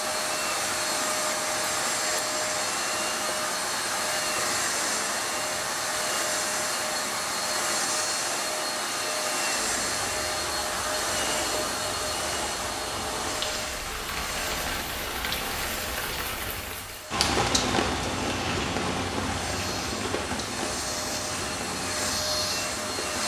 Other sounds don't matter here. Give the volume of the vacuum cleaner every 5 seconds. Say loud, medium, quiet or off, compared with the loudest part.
loud, loud, loud, medium, loud.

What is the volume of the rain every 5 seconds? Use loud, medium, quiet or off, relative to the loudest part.
medium, medium, medium, loud, medium.